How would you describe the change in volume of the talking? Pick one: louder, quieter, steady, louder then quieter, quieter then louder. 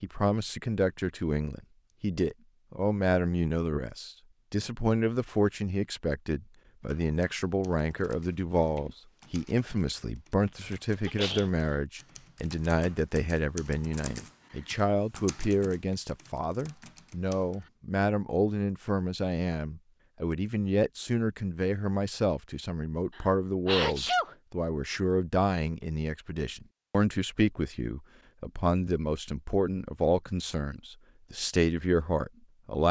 steady.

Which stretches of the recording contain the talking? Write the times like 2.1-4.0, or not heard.
0.0-32.8.